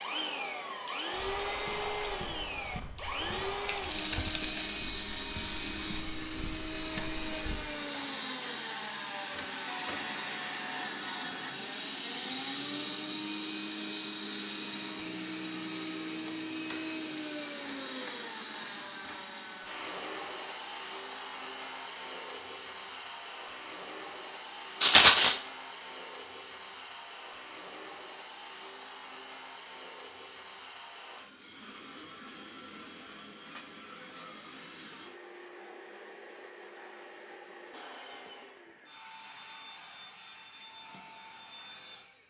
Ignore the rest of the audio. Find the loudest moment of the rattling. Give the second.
25 s.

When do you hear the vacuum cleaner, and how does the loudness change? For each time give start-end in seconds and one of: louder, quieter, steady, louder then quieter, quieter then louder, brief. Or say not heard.
0.0-42.2 quieter.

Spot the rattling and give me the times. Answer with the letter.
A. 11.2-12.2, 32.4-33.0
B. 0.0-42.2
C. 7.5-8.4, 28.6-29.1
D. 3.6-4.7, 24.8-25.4
D.